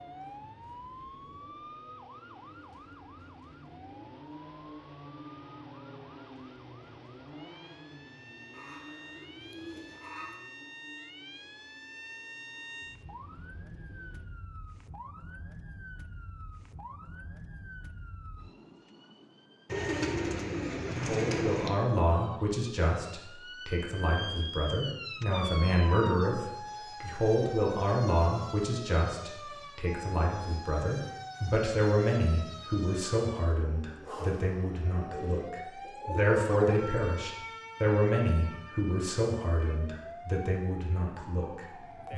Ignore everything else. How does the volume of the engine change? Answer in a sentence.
The loudness of the engine goes up, then down.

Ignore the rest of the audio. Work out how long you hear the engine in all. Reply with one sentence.
The engine can be heard for 14 seconds in total.